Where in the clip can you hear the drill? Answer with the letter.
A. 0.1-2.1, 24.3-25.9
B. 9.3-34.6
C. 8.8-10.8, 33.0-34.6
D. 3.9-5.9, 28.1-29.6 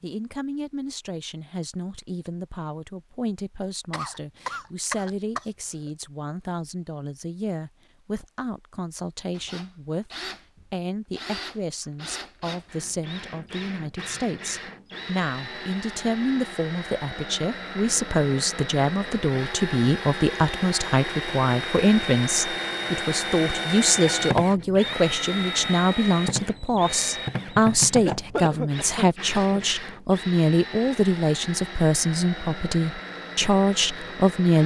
B.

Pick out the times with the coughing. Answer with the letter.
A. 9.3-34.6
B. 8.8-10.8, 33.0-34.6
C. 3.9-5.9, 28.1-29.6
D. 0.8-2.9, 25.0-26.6
C.